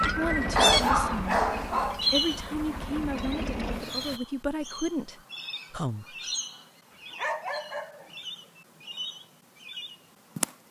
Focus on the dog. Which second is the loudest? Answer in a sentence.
The volume of the dog peaks at 1 second.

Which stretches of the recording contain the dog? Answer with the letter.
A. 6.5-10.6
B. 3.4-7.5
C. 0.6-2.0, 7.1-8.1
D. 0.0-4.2
C.